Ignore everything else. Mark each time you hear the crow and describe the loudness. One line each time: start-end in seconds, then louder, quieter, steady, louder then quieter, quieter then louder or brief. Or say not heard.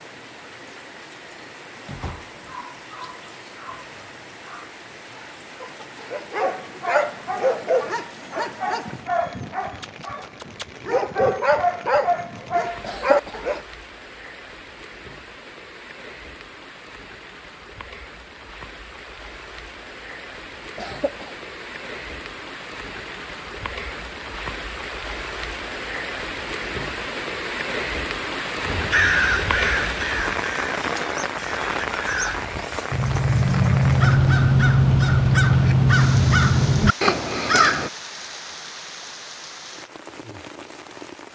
28.6-37.9 quieter then louder.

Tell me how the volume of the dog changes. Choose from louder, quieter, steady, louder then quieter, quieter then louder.
louder.